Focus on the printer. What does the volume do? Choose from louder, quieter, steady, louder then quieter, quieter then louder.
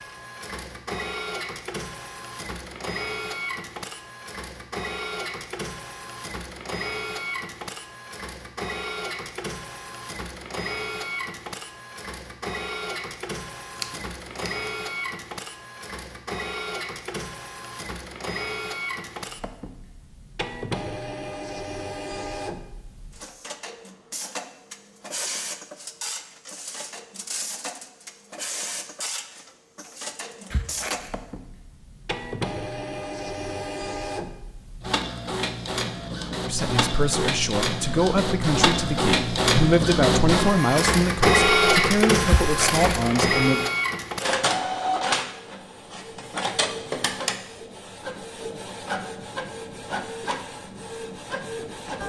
louder.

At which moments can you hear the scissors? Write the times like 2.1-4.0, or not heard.
13.8-14.7, 30.5-31.1, 42.2-42.9.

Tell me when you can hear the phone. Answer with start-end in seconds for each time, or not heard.
not heard.